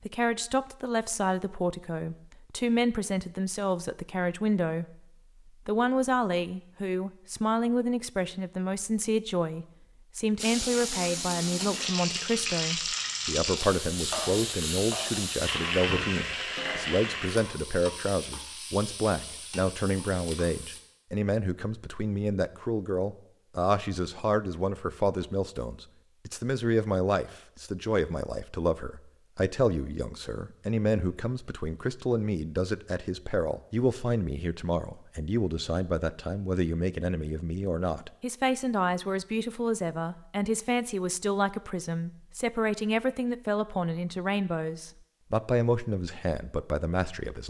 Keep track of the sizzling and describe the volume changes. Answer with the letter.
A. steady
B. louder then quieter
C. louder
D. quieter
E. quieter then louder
D.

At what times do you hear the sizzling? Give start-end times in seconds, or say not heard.
10.3-20.8.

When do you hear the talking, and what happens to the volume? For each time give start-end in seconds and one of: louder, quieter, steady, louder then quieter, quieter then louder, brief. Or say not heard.
0.0-47.4 steady.